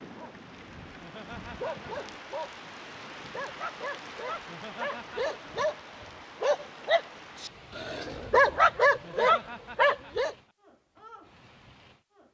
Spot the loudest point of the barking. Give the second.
9 s.